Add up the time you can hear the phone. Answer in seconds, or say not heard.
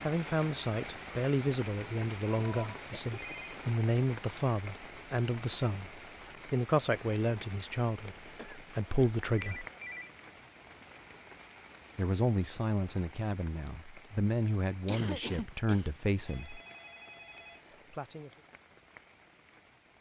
4 s.